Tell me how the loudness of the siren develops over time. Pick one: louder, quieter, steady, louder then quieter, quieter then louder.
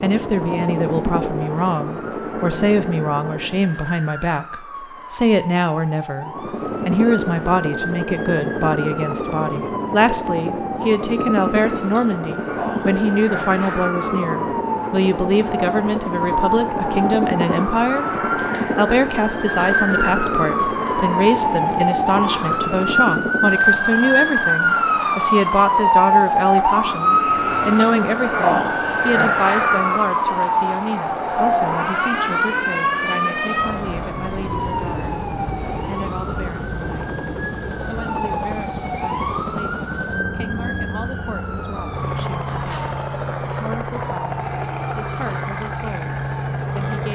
louder then quieter.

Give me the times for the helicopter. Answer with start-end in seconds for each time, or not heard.
0.0-3.8, 6.2-47.1.